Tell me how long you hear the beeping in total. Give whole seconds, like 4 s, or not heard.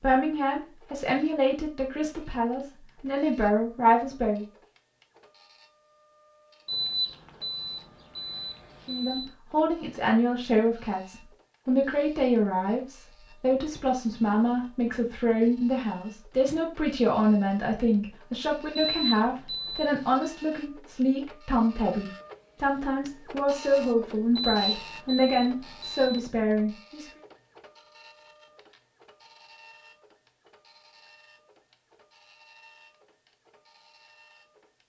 6 s.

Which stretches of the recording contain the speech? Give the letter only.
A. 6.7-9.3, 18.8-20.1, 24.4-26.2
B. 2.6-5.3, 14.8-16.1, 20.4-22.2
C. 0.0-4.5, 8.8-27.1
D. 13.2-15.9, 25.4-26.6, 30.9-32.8
C.